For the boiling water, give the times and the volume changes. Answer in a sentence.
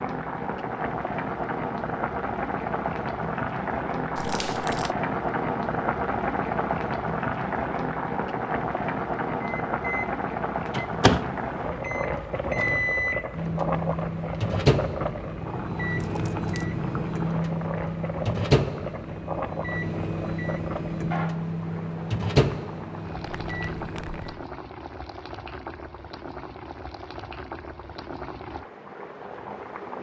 The boiling water can be heard from 0.0 to 29.9 s, getting quieter.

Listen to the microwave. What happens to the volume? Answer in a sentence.
The loudness of the microwave stays about the same.